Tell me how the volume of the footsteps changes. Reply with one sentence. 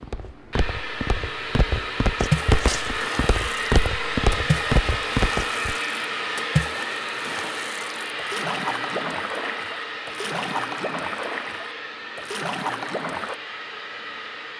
The loudness of the footsteps goes up.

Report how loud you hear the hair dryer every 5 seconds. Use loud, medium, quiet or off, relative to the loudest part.
loud, loud, medium.